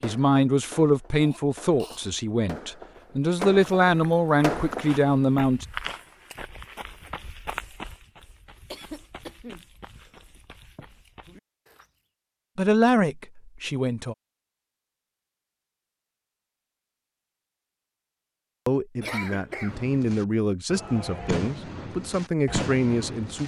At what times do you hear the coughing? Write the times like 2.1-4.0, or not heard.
1.1-2.0, 8.7-10.8, 19.0-19.8.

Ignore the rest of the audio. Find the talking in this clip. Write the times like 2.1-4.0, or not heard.
0.0-5.7, 12.6-14.2, 18.6-23.4.